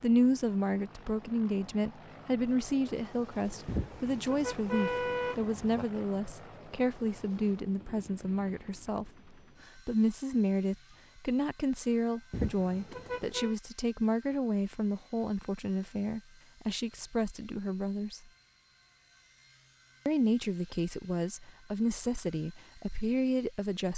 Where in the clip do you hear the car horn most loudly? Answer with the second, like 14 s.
5 s.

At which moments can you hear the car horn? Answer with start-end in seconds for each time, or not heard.
3.6-5.8, 12.3-13.6.